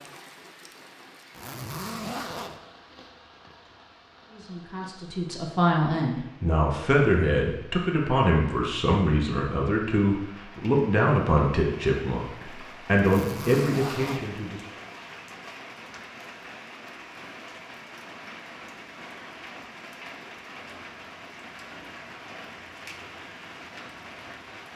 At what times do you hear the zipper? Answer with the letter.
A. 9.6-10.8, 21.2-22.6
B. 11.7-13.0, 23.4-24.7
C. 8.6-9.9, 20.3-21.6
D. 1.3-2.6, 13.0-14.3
D.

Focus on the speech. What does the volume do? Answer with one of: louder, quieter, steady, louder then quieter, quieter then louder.
steady.